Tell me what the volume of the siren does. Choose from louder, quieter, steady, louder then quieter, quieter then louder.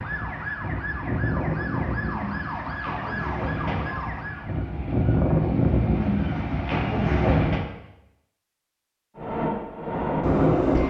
steady.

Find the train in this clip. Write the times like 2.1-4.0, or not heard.
0.0-7.7, 9.2-10.8.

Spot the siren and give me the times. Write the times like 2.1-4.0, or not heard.
0.0-4.5.